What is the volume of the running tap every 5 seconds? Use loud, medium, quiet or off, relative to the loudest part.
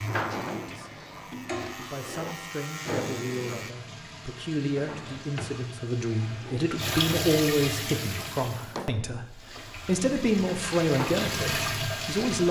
medium, loud, loud.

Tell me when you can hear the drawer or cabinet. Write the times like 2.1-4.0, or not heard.
0.3-2.4, 4.8-6.8, 8.6-9.9.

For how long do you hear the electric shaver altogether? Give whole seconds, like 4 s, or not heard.
4 s.